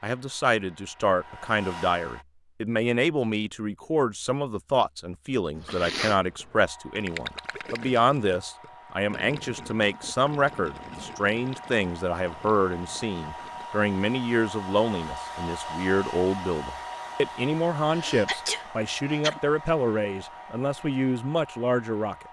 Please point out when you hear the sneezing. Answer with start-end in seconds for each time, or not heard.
5.5-6.6, 17.9-19.4.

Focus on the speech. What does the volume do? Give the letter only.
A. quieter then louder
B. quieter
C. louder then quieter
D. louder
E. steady
E.